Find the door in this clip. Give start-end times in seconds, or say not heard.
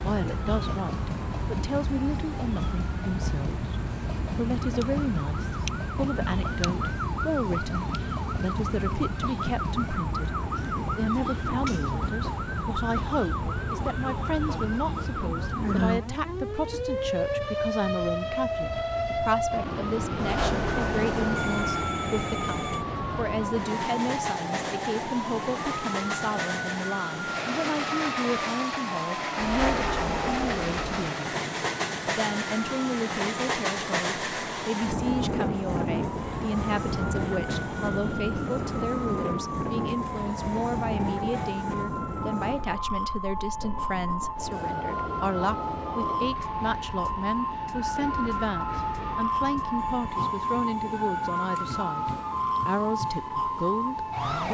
20.1-21.9, 29.4-31.1.